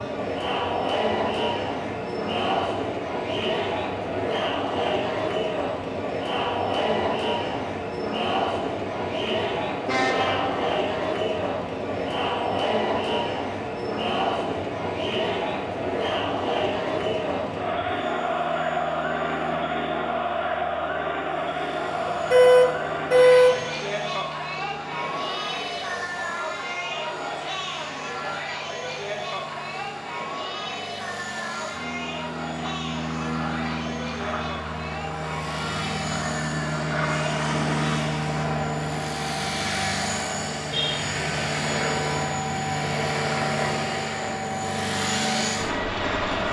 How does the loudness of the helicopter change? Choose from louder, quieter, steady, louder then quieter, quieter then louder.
louder.